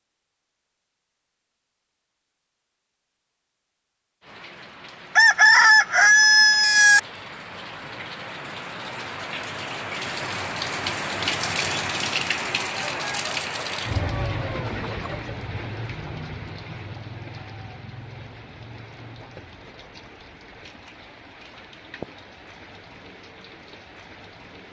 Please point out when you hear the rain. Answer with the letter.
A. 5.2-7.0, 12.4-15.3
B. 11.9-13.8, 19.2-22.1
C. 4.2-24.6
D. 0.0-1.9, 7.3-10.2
C.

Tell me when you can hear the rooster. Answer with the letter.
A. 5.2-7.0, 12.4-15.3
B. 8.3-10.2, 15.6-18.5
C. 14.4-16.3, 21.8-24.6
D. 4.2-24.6
A.